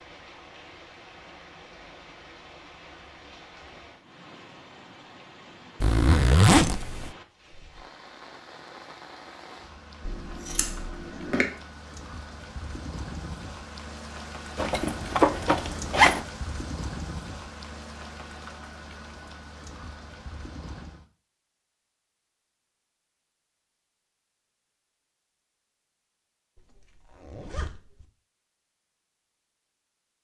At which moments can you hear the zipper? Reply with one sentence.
You can hear the zipper from 5.8 to 7.1 s, from 14.6 to 16.2 s and from 26.6 to 28.1 s.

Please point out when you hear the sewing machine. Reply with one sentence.
You can't hear the sewing machine here.